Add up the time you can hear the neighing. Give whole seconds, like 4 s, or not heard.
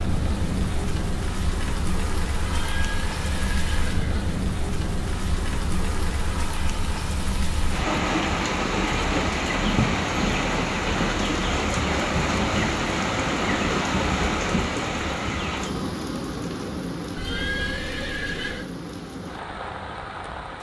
3 s.